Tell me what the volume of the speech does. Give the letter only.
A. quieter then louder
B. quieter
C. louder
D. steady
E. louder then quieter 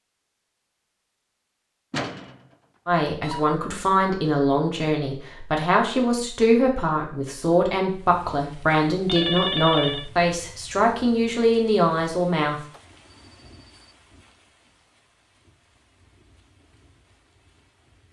D.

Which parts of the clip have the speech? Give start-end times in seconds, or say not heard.
2.9-12.6.